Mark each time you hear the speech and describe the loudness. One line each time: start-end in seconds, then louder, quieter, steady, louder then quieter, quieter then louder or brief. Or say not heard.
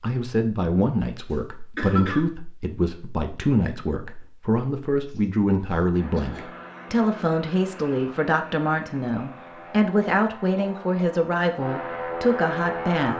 0.0-13.1 steady.